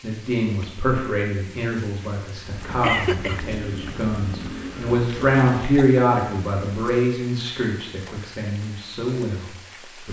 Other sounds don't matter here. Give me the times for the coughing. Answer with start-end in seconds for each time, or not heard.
2.8-3.4, 5.0-5.9.